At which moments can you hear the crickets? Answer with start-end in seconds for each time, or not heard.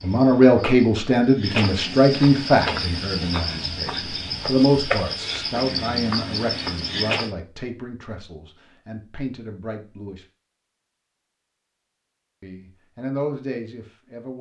0.0-7.3.